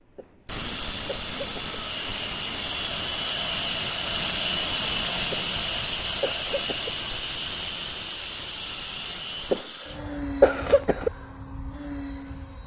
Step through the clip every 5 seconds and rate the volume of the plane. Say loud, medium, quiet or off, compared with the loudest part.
loud, loud, medium.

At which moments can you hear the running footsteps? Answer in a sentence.
You can't hear the running footsteps here.